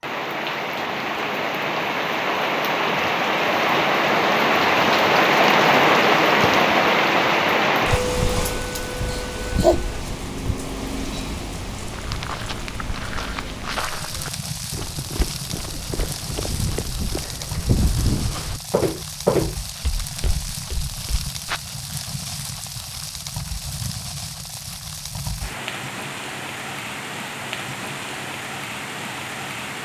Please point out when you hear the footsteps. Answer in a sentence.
You can hear the footsteps from 11.9 to 21.6 s.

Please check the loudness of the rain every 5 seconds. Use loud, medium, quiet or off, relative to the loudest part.
loud, loud, quiet, quiet, quiet, quiet.